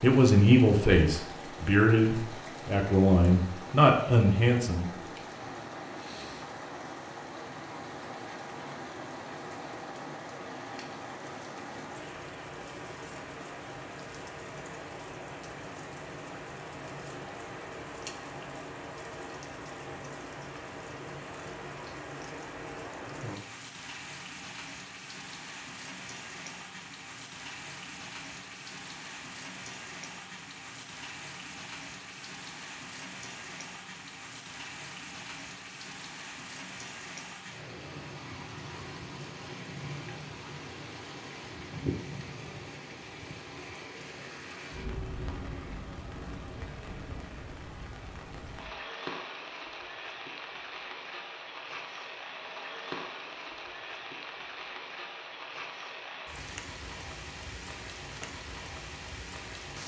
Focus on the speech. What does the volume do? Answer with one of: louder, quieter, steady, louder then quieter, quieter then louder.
quieter then louder.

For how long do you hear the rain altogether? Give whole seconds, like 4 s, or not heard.
60 s.